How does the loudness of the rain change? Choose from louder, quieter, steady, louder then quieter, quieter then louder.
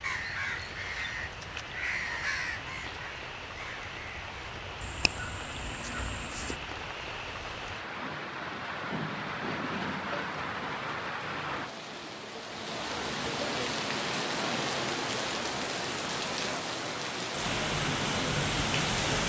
louder.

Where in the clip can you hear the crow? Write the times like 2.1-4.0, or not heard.
0.0-6.6.